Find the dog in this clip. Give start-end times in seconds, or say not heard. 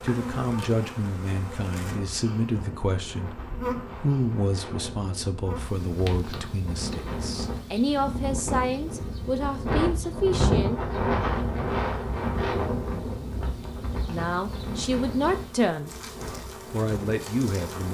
not heard.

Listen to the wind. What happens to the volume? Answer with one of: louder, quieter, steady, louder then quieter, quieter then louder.
louder then quieter.